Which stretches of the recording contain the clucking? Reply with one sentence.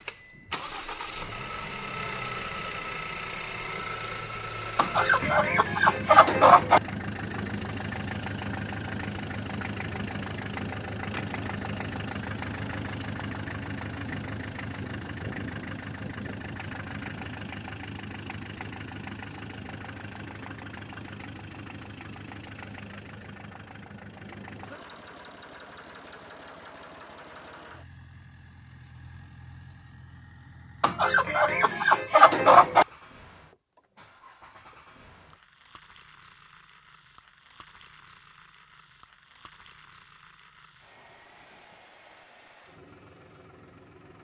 You can hear the clucking from 4.8 to 6.8 s and from 30.8 to 32.9 s.